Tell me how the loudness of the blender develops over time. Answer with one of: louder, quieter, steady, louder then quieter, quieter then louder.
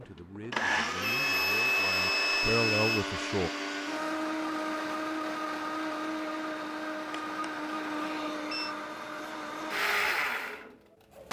steady.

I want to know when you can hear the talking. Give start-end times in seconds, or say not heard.
0.0-3.5.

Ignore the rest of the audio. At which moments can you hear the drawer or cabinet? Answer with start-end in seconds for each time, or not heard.
not heard.